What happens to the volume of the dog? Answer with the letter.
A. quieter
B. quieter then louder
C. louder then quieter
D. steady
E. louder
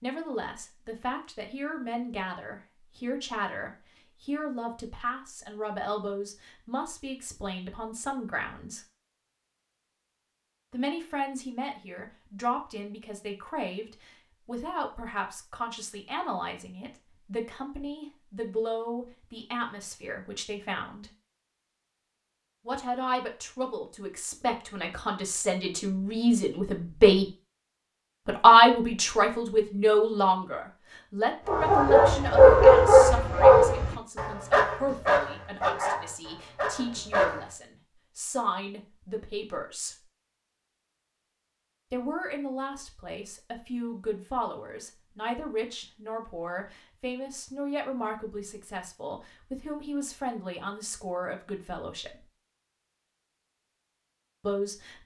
A.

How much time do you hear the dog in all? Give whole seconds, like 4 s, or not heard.
6 s.